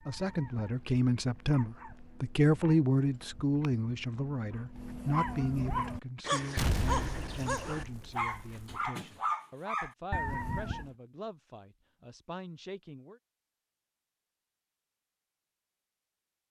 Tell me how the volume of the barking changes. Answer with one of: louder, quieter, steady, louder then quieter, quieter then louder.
louder.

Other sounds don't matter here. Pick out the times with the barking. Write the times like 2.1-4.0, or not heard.
0.0-10.9.